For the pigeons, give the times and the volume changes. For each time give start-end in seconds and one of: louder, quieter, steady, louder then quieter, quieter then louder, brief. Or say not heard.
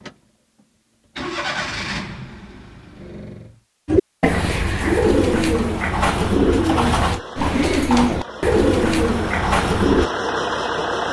3.9-10.1 steady.